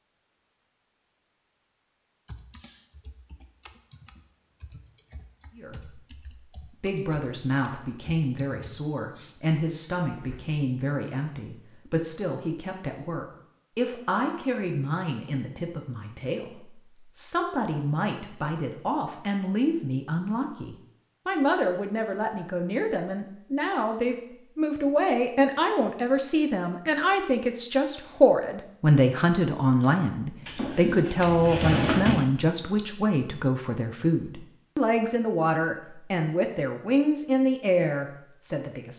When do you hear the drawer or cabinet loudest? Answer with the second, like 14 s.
32 s.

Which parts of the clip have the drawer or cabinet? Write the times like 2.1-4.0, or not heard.
30.4-32.2.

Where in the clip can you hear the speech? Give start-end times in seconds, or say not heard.
5.5-6.0, 6.8-38.9.